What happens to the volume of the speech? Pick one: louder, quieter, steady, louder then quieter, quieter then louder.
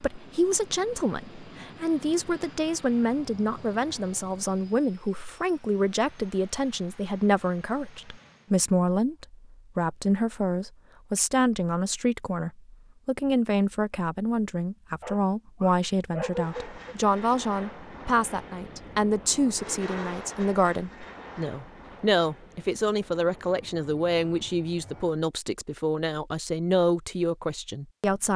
steady.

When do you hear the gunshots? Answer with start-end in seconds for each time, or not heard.
not heard.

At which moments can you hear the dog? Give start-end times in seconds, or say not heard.
15.0-16.8.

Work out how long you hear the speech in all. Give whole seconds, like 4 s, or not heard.
28 s.